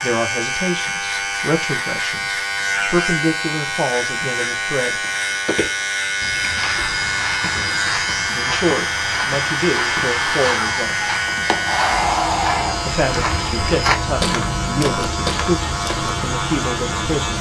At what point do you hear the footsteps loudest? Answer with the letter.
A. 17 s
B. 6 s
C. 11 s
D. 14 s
D.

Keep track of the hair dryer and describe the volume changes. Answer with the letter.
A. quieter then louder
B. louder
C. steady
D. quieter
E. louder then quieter
B.